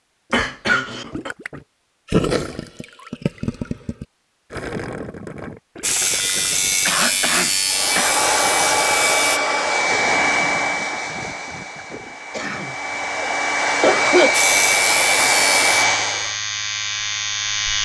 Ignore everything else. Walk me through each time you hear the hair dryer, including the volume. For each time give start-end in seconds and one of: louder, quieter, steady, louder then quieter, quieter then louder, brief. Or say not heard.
7.7-16.4 quieter then louder.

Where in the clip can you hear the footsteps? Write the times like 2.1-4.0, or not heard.
not heard.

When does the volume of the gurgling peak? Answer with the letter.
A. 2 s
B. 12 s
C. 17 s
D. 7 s
A.